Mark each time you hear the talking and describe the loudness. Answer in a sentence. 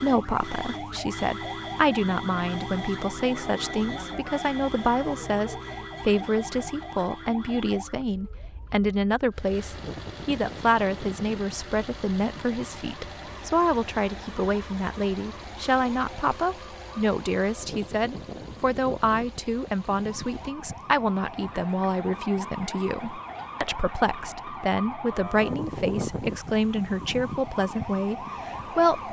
The talking can be heard from 0.0 to 29.0 s, at a steady volume.